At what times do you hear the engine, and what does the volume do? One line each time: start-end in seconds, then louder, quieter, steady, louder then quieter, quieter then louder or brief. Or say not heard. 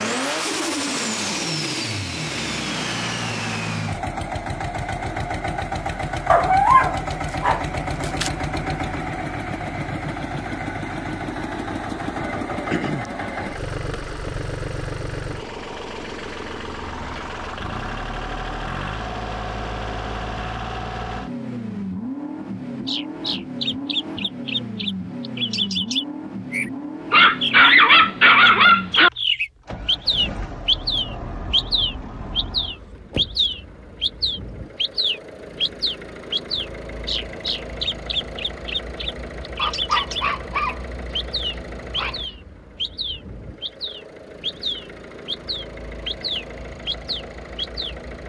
0.0-48.2 quieter.